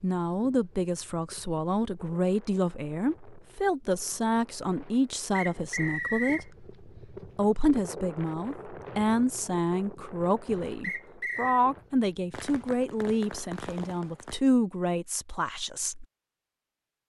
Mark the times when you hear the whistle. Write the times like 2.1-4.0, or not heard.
5.3-6.5, 10.8-11.6.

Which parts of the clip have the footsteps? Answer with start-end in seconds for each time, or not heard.
not heard.